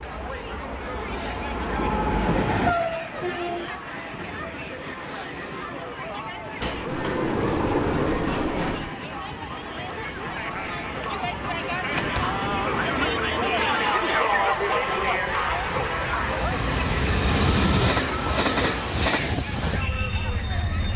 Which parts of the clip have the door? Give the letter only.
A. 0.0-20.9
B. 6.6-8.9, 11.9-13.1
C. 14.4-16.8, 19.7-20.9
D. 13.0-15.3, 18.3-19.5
B.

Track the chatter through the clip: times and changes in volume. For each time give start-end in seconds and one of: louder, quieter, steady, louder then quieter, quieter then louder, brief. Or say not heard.
0.0-20.9 louder then quieter.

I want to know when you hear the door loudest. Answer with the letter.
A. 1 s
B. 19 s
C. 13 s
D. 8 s
D.